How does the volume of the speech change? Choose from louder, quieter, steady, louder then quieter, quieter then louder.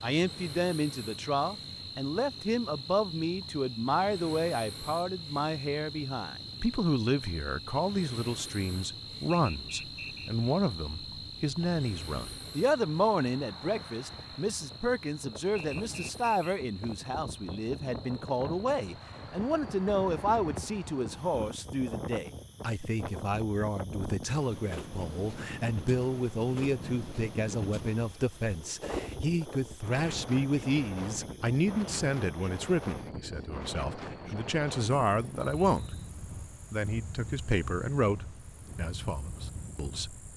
steady.